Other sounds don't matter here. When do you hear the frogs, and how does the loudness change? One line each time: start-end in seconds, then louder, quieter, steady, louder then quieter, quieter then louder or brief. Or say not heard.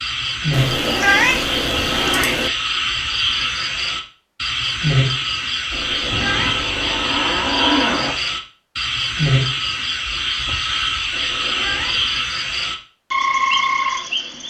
0.0-14.4 steady.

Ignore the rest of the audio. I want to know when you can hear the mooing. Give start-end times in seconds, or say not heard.
6.1-8.2.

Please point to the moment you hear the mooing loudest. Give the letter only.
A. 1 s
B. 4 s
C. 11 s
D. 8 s
D.